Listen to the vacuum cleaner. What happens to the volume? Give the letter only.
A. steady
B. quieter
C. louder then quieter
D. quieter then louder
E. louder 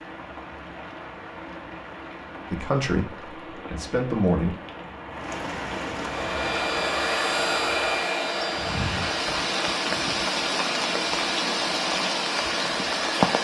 B.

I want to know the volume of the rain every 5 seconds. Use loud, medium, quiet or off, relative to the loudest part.
quiet, medium, loud.